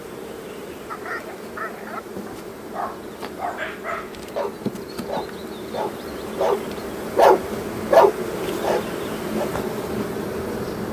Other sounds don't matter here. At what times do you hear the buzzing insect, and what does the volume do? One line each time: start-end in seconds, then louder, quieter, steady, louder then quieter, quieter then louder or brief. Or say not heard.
0.0-10.8 louder.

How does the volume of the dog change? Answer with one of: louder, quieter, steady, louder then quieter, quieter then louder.
louder.